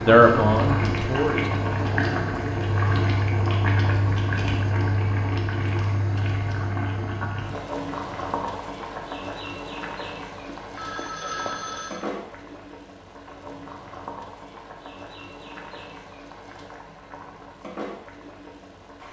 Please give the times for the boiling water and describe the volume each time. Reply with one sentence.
You can hear the boiling water from 0.0 to 19.0 s, getting quieter.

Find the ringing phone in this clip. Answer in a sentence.
The ringing phone can be heard from 10.6 to 12.1 s.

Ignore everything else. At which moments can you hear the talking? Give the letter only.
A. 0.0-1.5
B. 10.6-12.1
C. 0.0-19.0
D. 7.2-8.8
A.